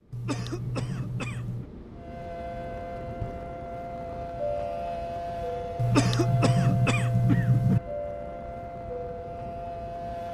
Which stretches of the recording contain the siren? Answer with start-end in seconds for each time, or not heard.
1.9-10.2.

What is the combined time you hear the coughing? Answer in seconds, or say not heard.
4 s.